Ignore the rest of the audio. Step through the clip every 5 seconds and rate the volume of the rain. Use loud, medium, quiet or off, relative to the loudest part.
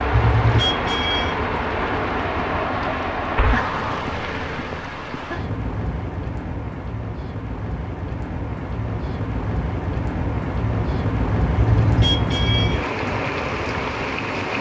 loud, medium, loud.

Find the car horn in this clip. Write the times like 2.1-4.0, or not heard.
0.1-1.4, 11.6-12.8.